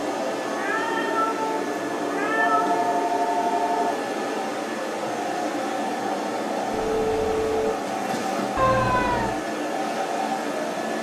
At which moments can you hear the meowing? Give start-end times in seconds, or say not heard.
0.5-2.7, 8.6-9.3.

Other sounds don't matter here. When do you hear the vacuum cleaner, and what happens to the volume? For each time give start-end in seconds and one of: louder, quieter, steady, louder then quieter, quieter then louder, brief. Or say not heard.
0.0-10.9 steady.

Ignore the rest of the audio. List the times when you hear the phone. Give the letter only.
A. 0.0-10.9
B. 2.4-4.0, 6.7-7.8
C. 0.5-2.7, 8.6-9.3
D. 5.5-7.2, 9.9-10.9
B.